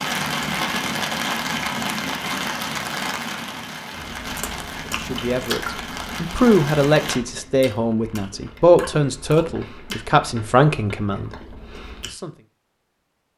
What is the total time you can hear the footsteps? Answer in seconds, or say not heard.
not heard.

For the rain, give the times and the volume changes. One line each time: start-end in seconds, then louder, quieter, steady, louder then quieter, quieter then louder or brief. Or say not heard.
0.0-7.2 quieter.